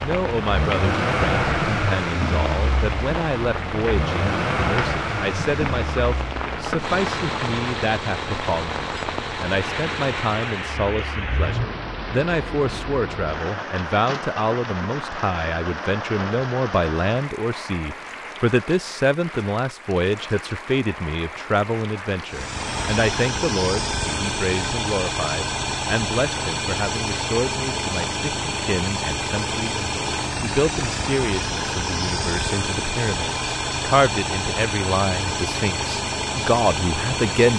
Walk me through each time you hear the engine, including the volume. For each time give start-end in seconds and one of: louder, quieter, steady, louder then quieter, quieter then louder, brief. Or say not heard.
0.0-11.8 quieter
22.2-37.5 steady.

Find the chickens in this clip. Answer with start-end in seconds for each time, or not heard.
not heard.